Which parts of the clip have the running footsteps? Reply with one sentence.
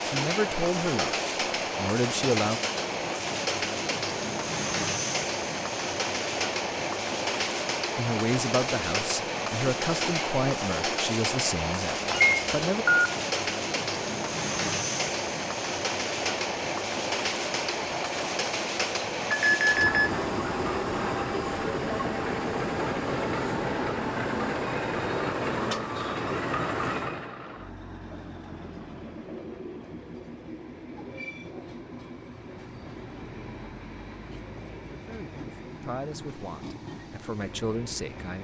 The running footsteps can't be heard in this clip.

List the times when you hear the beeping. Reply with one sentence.
You can hear the beeping from 12.1 to 13.1 s and from 19.3 to 20.1 s.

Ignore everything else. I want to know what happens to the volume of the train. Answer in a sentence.
The loudness of the train goes down.